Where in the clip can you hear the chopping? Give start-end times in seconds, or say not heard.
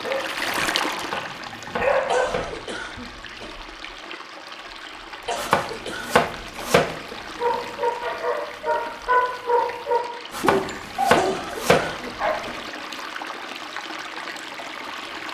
0.9-2.8, 5.3-7.7, 10.3-12.7.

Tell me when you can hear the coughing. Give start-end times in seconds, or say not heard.
2.0-3.6, 5.2-6.8, 11.1-12.6.